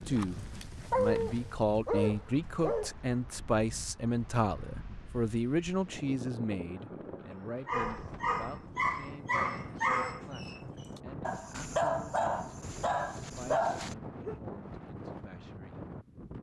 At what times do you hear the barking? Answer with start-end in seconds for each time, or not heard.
0.0-2.9, 7.7-14.4.